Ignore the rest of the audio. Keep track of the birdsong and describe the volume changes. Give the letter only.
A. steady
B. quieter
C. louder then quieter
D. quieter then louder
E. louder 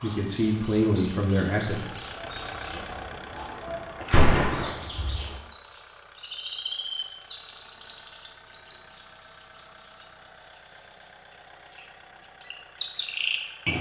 E.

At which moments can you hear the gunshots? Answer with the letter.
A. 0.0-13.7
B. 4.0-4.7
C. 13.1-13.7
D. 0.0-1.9
B.